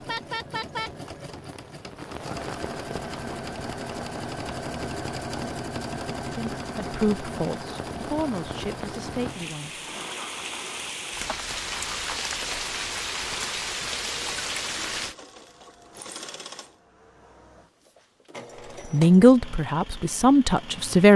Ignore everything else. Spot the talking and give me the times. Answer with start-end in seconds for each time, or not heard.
6.3-10.0, 18.9-21.1.